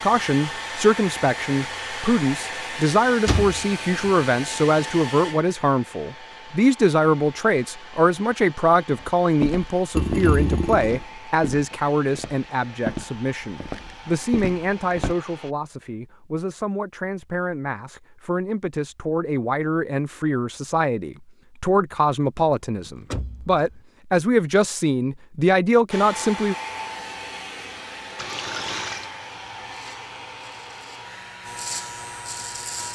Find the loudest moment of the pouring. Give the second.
10 s.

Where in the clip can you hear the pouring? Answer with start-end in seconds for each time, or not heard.
9.9-11.0, 28.1-29.1.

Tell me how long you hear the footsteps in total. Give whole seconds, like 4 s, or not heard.
6 s.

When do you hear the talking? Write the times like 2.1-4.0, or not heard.
0.0-26.6.